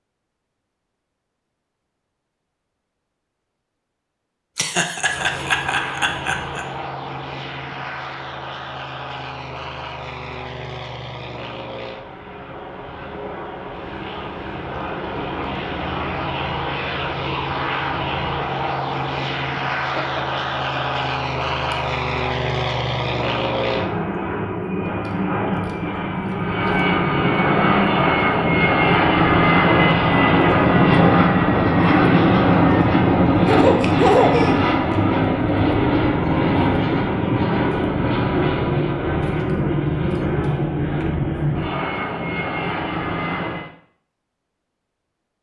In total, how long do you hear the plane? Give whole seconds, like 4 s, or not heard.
39 s.